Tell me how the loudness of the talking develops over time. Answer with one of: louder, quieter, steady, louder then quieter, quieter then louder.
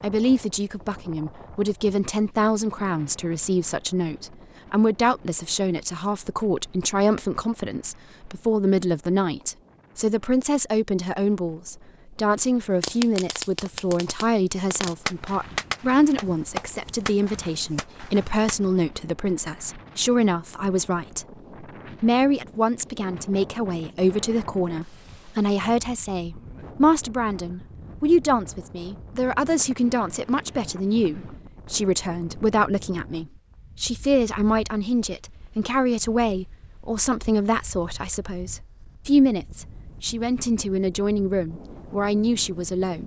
steady.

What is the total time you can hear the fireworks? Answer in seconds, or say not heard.
6 s.